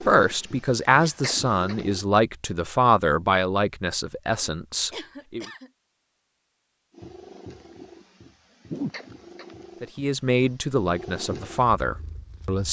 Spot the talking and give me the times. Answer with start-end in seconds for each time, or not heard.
0.0-5.5, 9.8-12.6.